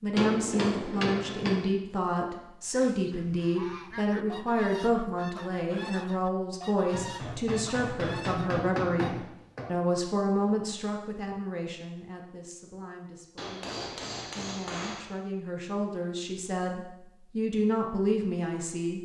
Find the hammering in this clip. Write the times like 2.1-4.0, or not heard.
0.1-1.6, 6.9-9.7, 13.3-15.1.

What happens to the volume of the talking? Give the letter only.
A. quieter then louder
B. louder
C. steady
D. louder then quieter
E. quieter
A.